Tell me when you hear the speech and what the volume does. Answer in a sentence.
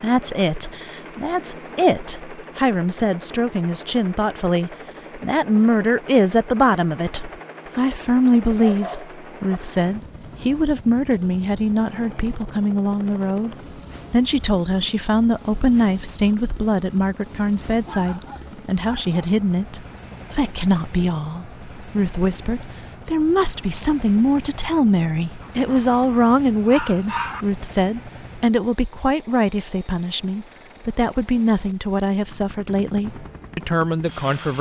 You can hear the speech from 0.0 to 34.5 s, at a steady volume.